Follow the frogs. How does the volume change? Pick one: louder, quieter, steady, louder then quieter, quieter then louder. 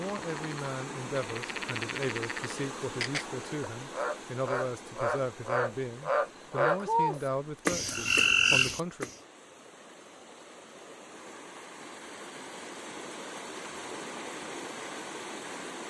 louder.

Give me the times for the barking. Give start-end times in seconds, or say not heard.
not heard.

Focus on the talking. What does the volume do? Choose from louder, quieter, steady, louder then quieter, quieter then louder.
steady.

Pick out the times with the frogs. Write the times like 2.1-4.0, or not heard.
0.0-9.2.